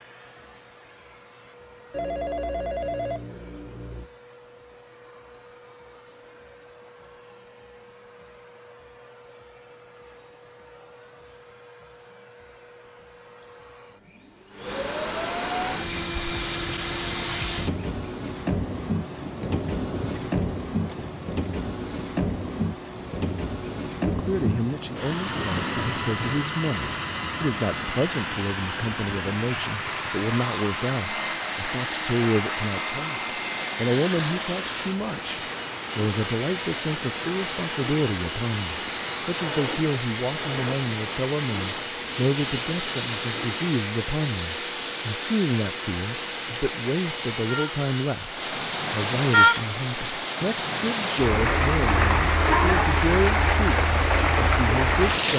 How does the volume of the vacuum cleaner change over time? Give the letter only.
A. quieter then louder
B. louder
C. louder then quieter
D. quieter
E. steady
B.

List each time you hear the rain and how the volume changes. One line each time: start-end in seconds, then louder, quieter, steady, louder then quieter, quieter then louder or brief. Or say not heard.
15.6-55.3 louder.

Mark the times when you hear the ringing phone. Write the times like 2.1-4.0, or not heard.
1.9-4.1, 39.4-40.8.